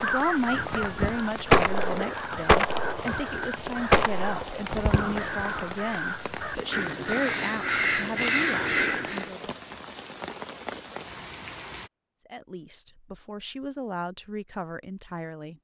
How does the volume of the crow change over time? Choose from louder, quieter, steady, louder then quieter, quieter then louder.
quieter then louder.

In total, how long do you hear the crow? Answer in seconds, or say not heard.
9 s.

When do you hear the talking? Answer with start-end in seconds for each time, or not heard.
0.0-9.6, 12.3-15.6.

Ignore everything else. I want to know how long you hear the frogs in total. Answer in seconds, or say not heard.
not heard.